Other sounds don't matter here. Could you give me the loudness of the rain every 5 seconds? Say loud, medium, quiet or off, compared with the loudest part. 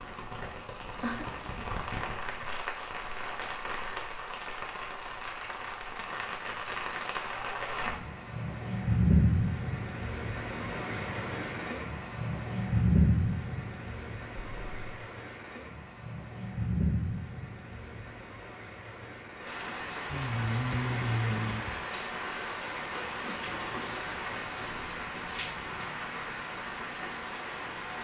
medium, loud, loud, medium, medium, medium.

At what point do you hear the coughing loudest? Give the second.
1 s.